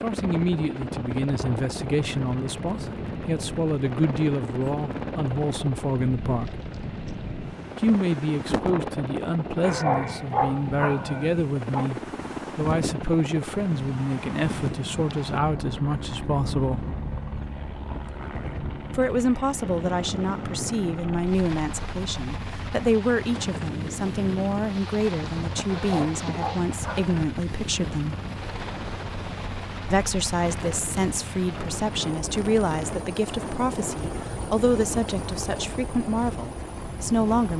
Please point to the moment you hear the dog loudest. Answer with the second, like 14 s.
10 s.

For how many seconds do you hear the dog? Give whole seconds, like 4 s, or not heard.
4 s.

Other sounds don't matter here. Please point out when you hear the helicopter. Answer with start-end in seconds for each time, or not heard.
0.0-37.5.